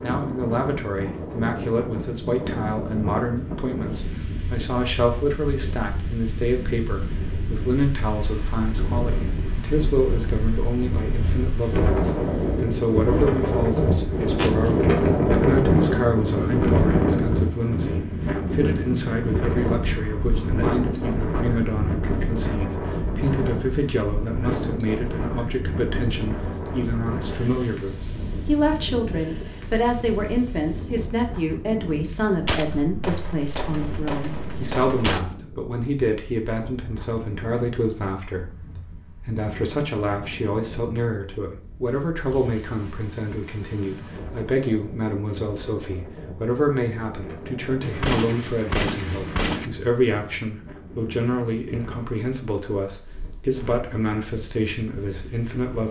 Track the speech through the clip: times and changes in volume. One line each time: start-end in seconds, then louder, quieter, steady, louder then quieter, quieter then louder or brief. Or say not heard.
0.0-55.8 steady.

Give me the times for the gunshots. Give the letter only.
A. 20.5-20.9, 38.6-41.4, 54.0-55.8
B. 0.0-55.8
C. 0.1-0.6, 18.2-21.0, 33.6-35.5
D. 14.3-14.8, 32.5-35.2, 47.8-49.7
D.